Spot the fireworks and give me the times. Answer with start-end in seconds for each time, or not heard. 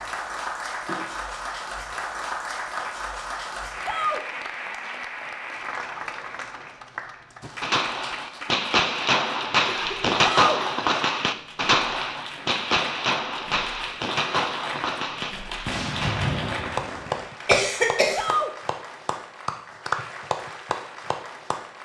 7.4-17.6.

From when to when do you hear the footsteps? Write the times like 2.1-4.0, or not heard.
not heard.